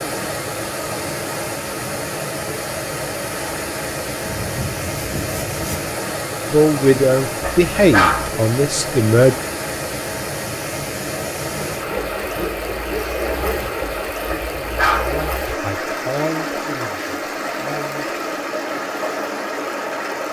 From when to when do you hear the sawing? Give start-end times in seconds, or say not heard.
4.2-6.0, 11.7-14.1.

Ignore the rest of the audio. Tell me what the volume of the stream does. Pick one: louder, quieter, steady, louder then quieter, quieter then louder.
steady.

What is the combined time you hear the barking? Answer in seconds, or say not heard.
2 s.